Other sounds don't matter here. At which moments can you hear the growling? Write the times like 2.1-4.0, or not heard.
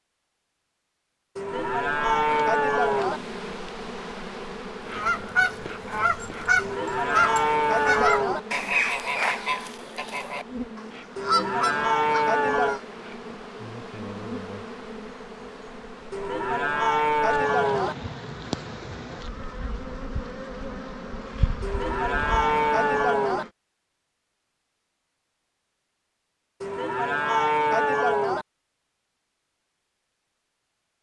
not heard.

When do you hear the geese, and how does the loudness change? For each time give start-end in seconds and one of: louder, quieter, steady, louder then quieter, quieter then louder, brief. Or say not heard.
4.9-12.8 quieter then louder.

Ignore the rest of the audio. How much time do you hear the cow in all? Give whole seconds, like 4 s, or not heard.
11 s.